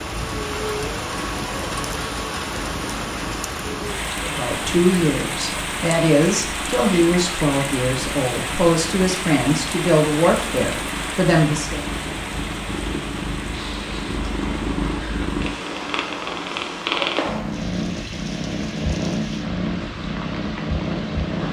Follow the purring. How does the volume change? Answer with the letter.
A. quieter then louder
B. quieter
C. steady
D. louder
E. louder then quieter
D.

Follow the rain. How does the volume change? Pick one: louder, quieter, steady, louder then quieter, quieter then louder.
quieter.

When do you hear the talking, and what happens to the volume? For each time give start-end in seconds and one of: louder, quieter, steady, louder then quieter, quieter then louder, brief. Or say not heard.
4.2-11.8 steady.